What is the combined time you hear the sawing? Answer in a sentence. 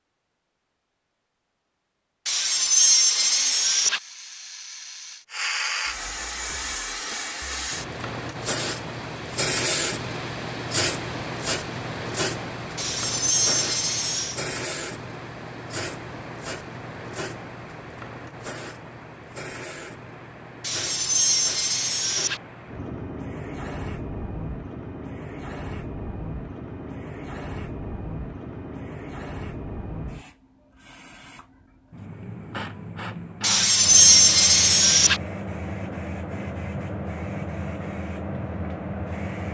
The sawing can be heard for 7 seconds in total.